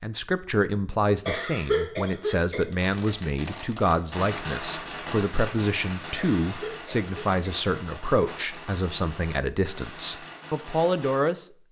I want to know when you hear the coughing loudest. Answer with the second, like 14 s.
2 s.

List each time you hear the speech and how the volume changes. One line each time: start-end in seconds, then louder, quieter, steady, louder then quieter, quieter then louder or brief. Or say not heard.
0.0-11.4 steady.